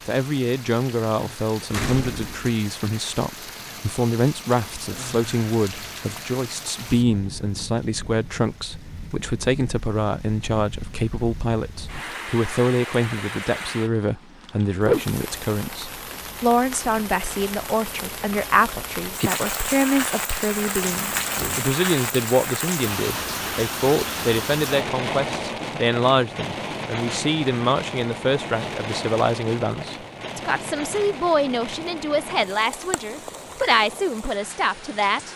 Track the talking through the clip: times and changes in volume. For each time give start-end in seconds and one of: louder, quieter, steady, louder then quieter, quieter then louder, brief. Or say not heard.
0.1-35.3 steady.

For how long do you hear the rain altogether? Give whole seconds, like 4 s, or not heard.
35 s.